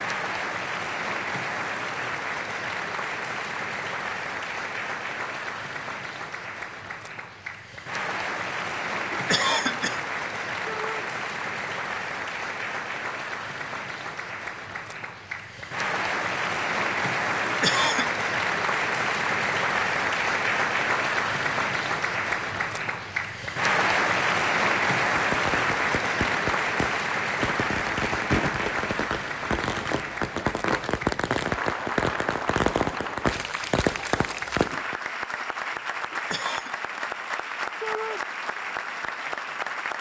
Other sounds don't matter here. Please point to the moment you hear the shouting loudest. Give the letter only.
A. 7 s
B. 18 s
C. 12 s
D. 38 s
D.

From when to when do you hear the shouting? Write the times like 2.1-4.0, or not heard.
10.7-11.1, 37.8-38.2.